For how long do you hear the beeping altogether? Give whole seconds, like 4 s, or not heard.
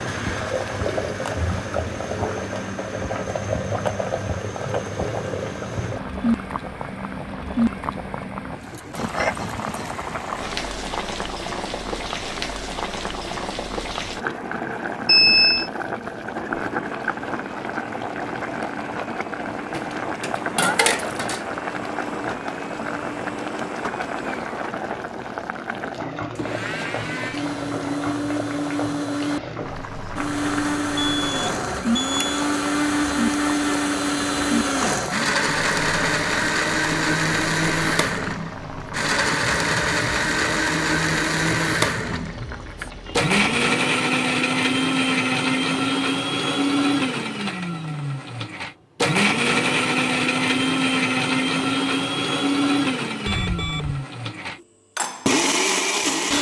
3 s.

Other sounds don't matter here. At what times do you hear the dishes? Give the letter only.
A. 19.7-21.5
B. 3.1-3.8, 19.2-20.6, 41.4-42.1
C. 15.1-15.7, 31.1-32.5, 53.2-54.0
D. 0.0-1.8
A.